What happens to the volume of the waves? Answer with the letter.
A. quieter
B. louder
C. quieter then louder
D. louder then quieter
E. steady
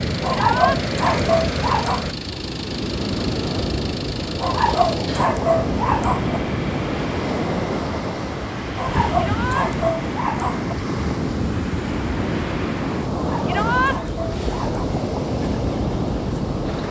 E.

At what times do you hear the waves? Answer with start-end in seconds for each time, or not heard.
0.0-16.8.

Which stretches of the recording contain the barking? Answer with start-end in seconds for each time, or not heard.
0.2-2.0, 4.4-6.3, 8.8-10.8, 13.3-14.9.